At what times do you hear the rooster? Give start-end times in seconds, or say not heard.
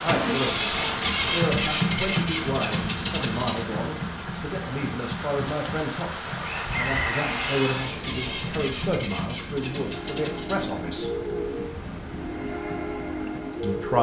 6.4-8.0.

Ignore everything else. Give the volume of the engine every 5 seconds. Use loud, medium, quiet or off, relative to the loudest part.
loud, medium, quiet.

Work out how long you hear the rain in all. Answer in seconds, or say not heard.
14 s.